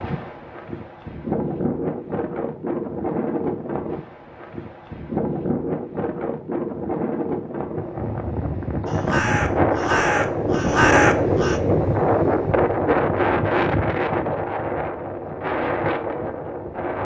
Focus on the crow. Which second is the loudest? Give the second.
11 s.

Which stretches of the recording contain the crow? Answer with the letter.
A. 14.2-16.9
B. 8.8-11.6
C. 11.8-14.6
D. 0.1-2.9
B.